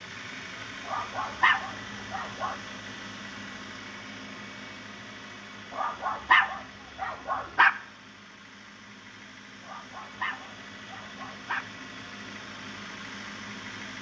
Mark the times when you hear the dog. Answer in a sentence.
You can hear the dog from 0.8 to 2.5 s, from 5.7 to 7.7 s and from 9.6 to 11.7 s.